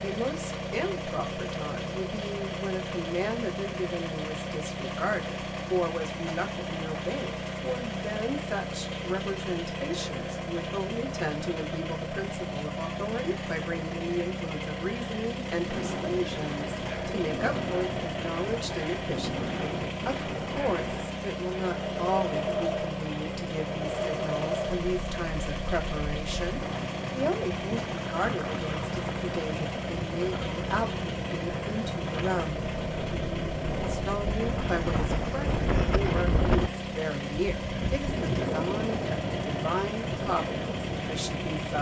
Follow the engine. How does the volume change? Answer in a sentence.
The volume of the engine stays about the same.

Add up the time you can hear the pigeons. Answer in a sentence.
The pigeons can't be heard in this clip.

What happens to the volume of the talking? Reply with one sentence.
The loudness of the talking stays about the same.